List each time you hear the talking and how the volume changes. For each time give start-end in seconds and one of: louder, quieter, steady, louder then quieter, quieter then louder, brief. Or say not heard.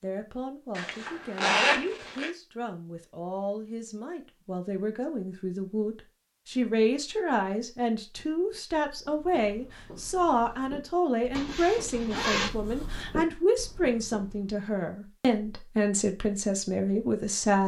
0.0-17.6 louder.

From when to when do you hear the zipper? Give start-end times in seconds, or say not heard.
0.8-2.3, 11.3-12.5.